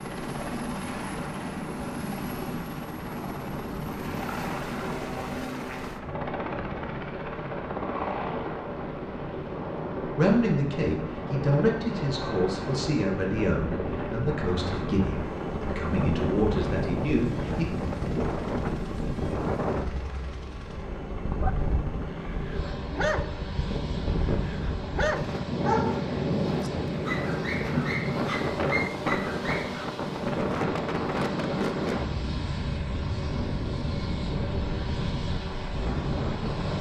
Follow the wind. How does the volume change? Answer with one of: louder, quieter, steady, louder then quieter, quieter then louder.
louder.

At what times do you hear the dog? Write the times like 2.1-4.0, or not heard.
21.4-29.9.